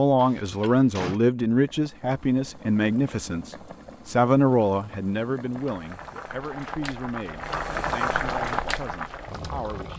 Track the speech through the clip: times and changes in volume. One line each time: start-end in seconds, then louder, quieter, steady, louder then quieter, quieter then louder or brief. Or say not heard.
0.0-9.9 quieter.